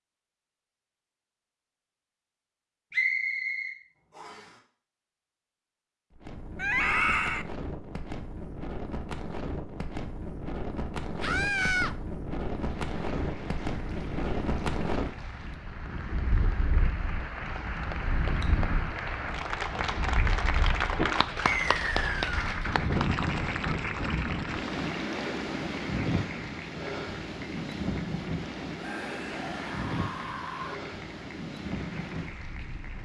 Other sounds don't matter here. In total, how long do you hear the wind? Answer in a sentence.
The wind can be heard for 27 seconds in total.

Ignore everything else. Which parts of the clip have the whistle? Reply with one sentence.
You can hear the whistle from 2.9 to 4.4 s and from 21.4 to 22.3 s.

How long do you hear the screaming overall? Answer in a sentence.
You can hear the screaming for 4 seconds altogether.